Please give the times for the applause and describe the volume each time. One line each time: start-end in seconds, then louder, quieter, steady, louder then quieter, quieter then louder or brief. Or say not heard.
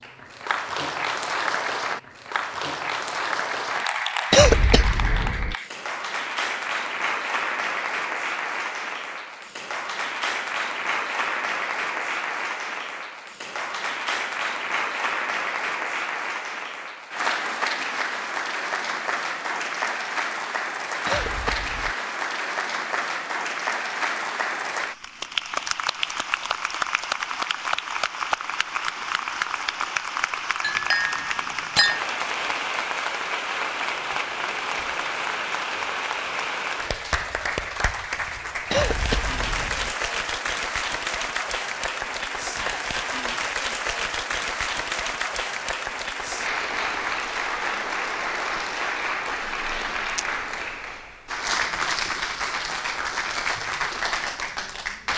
0.0-55.1 steady.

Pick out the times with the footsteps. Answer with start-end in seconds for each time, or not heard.
not heard.